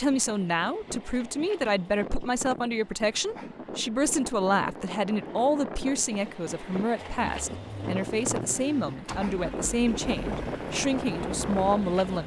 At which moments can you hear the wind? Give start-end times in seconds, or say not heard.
0.0-12.2.